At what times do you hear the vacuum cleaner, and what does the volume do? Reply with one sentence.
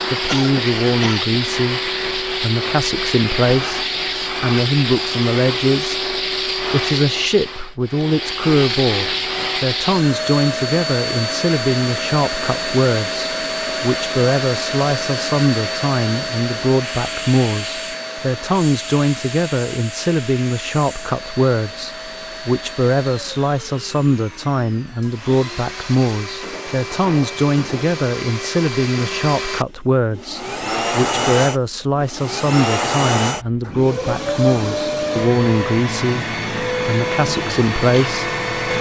The vacuum cleaner can be heard from 0.0 to 38.7 s, getting quieter then louder.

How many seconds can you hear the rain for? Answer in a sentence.
You can't hear the rain here.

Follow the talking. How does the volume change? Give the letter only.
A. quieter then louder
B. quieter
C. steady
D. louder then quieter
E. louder
C.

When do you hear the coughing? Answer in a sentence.
You can hear the coughing from 0.2 to 1.4 s.